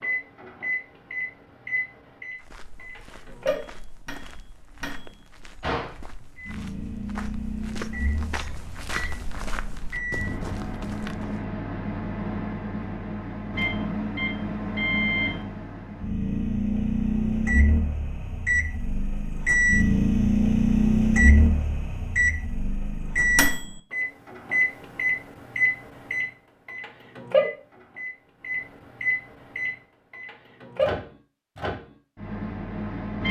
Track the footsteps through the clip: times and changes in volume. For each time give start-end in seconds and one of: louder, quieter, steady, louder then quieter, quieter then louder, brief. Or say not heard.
2.3-11.4 louder.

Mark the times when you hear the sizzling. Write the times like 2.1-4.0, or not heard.
not heard.